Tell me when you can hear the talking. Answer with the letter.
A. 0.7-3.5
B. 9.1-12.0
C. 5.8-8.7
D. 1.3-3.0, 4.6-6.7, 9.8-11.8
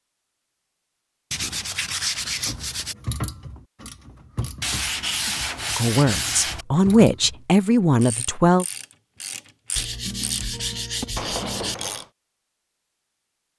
C.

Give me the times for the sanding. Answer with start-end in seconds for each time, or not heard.
1.3-3.0, 4.6-6.7, 9.8-11.8.